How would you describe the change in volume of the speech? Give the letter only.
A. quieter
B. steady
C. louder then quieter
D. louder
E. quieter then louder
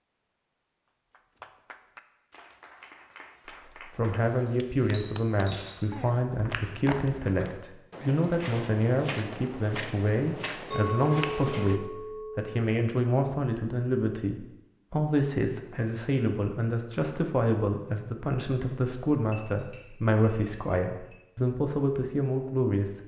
B.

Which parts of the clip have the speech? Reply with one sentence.
You can hear the speech from 3.8 to 23.0 s.